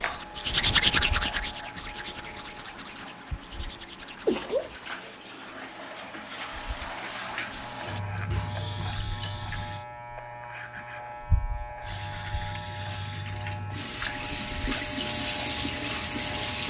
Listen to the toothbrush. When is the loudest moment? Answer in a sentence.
The volume of the toothbrush peaks at 1 second.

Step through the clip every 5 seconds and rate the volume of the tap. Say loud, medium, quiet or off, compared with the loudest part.
quiet, medium, medium, loud.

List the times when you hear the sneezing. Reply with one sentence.
You can hear the sneezing from 4.2 to 4.8 s.